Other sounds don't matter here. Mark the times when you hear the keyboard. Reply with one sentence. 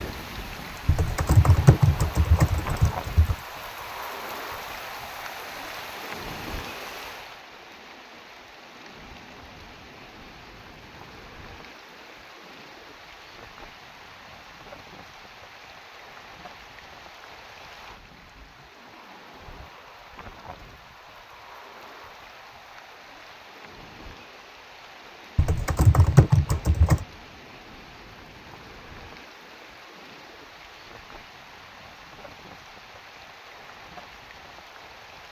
You can hear the keyboard from 0.8 to 3.4 s and from 25.4 to 27.1 s.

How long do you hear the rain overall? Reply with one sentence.
The rain can be heard for 35 seconds in total.